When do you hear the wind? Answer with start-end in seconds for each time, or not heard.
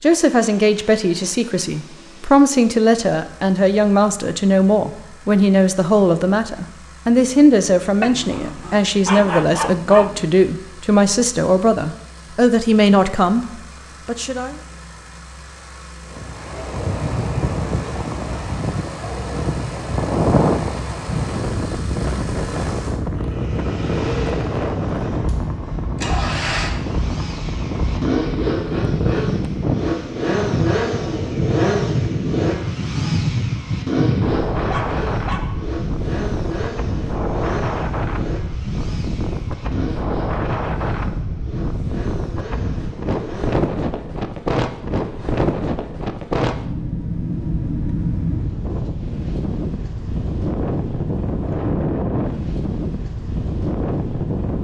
16.1-54.5.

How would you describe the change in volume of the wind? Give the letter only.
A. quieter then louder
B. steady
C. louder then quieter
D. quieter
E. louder
B.